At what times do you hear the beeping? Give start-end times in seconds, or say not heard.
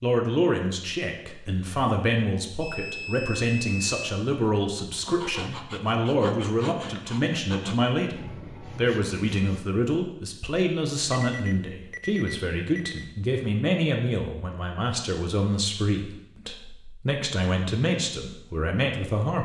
2.6-4.1, 11.2-13.2.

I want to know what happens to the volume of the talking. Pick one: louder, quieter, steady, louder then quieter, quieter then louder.
steady.